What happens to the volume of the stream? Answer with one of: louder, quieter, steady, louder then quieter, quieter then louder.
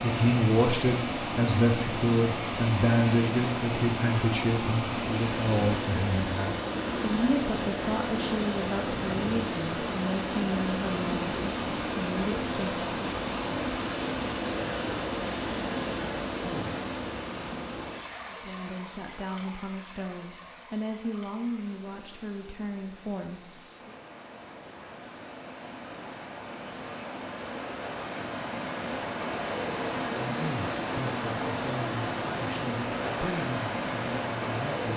quieter then louder.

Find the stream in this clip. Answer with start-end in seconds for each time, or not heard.
0.0-34.9.